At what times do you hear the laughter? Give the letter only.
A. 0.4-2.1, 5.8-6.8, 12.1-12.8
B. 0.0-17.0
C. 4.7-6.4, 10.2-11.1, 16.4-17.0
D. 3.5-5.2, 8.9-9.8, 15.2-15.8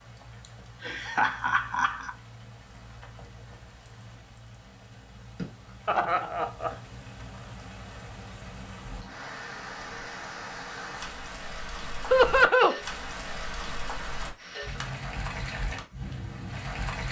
A.